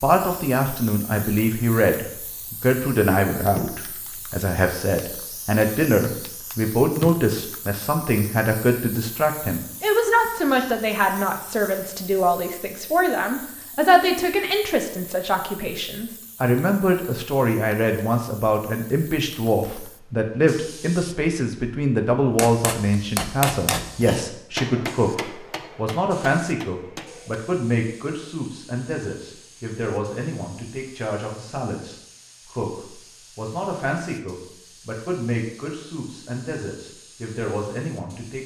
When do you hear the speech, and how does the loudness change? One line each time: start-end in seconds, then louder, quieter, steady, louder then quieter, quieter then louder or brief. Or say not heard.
0.0-38.4 quieter.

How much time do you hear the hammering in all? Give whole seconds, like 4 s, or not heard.
5 s.